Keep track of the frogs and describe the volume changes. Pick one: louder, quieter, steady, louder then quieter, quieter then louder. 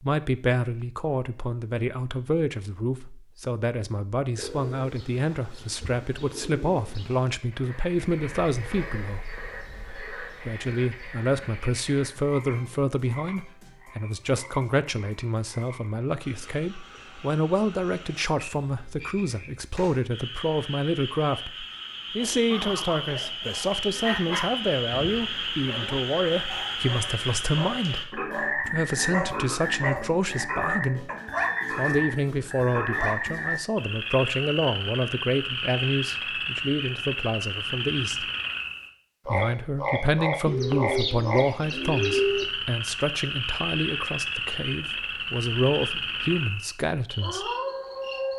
louder.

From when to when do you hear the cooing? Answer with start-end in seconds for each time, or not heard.
4.3-7.3, 40.5-42.5.